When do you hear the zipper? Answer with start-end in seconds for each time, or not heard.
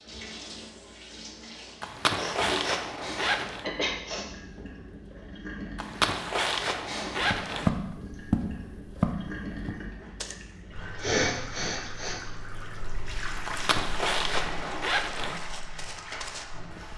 1.8-3.6, 5.8-7.7, 13.4-15.4.